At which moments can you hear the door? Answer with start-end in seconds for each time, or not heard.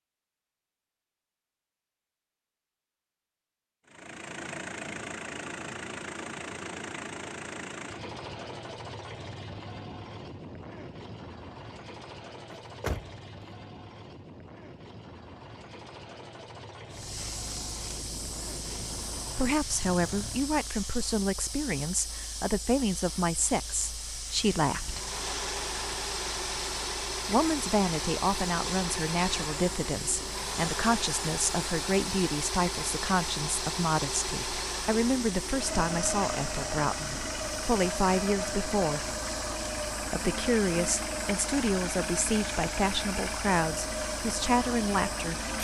12.5-13.6.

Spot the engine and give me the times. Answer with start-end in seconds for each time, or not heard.
3.9-20.8, 24.6-45.6.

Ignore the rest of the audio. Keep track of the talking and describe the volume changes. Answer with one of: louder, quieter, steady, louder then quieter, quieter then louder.
steady.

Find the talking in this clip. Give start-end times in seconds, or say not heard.
19.4-25.0, 27.2-39.1, 40.1-45.4.